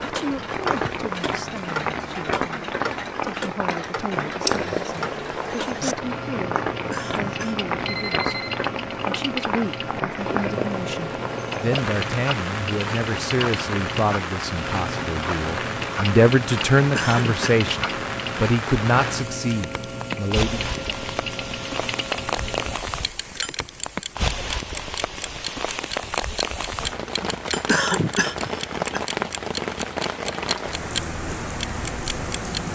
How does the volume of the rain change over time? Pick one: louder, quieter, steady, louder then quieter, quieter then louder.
steady.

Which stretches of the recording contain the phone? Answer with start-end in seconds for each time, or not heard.
7.8-8.6.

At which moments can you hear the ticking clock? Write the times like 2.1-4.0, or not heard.
0.0-32.6.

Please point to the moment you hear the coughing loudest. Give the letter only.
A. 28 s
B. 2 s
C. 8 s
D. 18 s
A.